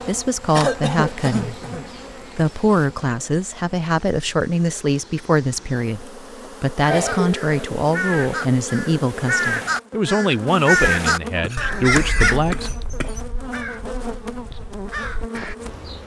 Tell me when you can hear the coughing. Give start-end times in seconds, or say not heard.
0.6-1.9, 6.8-7.6, 11.4-13.2.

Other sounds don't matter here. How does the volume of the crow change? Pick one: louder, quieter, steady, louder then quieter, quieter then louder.
louder then quieter.